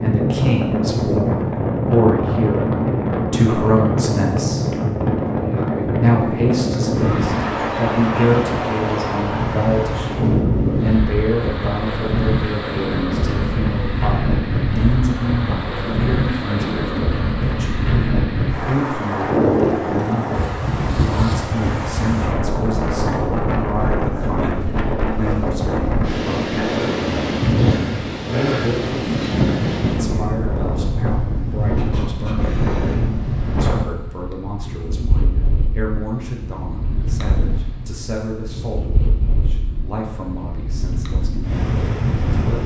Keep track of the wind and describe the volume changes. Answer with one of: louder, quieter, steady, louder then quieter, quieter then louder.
quieter.